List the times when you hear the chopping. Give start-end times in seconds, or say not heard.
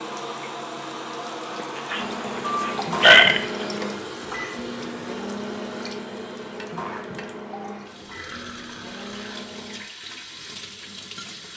not heard.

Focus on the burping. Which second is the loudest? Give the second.
3 s.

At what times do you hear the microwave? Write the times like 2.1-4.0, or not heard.
1.9-9.8.